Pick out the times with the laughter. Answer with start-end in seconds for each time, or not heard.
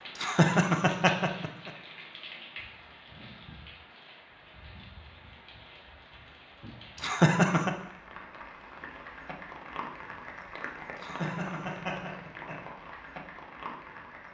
0.1-1.7, 7.0-7.7, 11.0-12.6.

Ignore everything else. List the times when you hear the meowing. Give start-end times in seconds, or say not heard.
not heard.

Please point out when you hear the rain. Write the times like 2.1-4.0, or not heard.
0.0-14.2.